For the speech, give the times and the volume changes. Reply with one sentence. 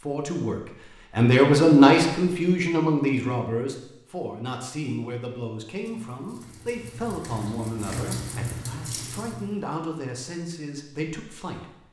You can hear the speech from 0.0 to 11.8 s, getting quieter.